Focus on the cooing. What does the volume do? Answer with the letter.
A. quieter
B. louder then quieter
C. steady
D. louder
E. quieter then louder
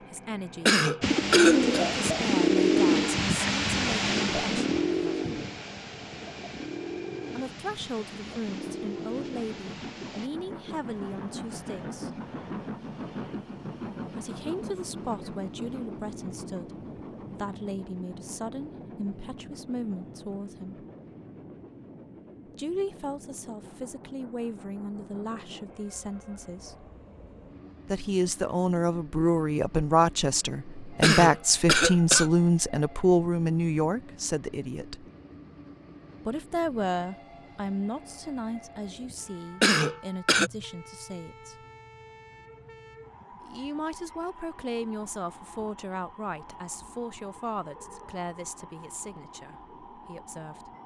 A.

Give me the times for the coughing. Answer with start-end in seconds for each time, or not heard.
0.7-1.6, 31.0-32.3, 39.6-40.5.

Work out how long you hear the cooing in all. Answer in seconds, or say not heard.
9 s.